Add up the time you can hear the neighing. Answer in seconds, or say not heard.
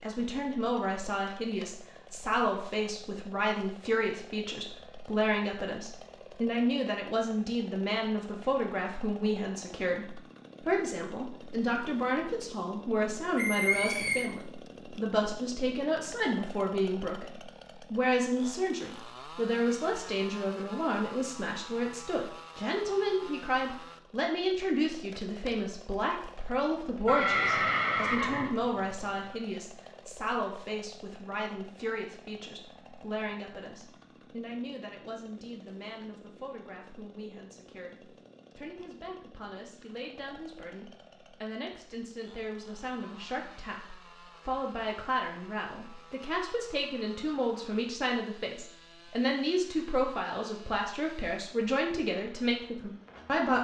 3 s.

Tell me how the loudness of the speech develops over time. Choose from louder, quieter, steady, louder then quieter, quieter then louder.
quieter then louder.